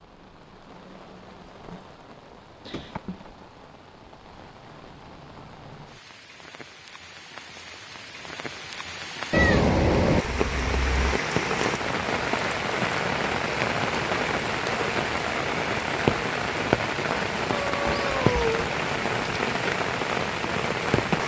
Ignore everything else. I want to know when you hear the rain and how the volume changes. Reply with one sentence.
The rain can be heard from 0.0 to 21.2 s, getting louder.